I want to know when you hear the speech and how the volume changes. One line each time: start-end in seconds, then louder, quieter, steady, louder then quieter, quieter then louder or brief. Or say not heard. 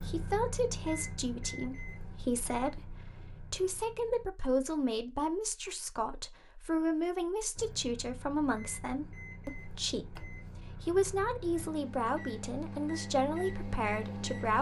0.0-14.5 steady.